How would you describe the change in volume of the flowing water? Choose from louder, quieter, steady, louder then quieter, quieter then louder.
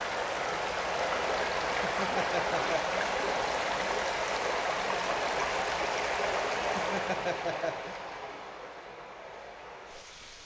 quieter.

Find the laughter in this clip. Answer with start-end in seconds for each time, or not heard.
1.8-3.0, 6.8-8.0.